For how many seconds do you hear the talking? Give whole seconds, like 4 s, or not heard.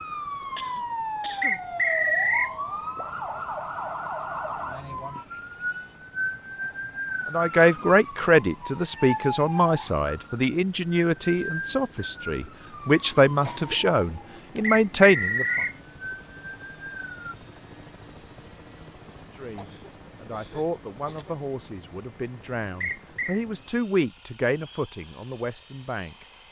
15 s.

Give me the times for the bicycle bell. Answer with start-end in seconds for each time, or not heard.
not heard.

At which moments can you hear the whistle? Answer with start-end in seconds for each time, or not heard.
1.4-2.5, 14.6-15.8, 22.8-23.4.